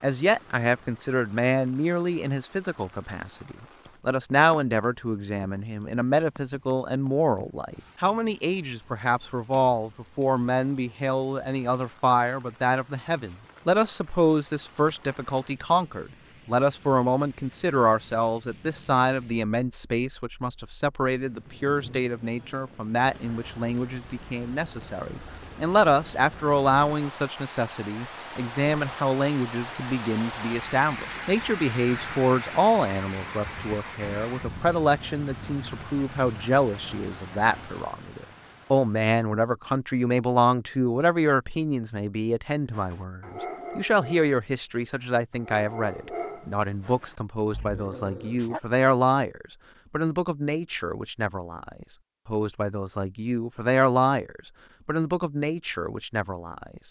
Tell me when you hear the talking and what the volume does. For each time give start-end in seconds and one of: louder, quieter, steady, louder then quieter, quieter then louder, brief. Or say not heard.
0.0-56.8 steady.